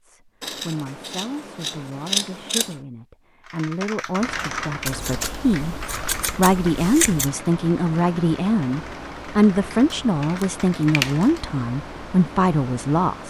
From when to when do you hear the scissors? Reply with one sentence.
You can hear the scissors from 0.4 to 2.8 s, from 4.8 to 7.3 s and from 10.4 to 11.2 s.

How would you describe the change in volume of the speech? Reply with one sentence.
The volume of the speech goes up.